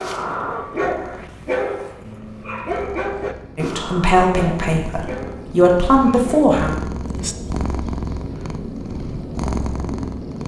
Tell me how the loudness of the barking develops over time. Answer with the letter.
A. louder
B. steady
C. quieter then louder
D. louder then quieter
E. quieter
E.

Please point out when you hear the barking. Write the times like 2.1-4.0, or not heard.
0.0-6.5.